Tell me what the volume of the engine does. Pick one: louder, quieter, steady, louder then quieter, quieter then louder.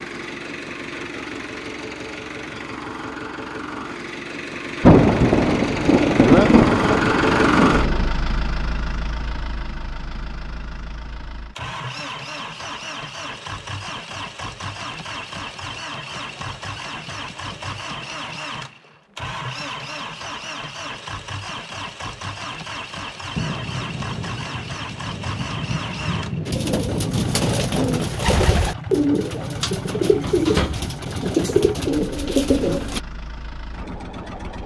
quieter.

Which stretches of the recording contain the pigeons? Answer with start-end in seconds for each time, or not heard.
26.4-33.0.